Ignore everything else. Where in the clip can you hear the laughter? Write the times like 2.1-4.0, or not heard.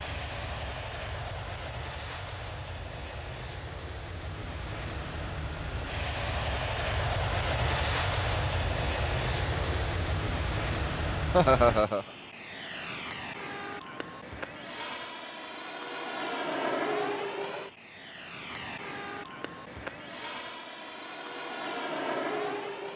11.3-12.1.